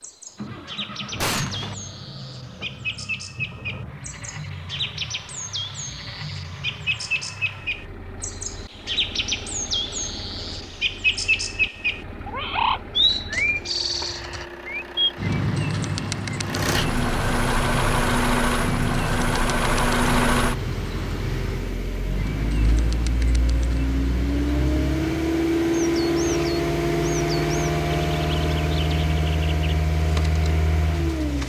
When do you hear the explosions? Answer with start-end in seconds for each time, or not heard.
1.1-1.8.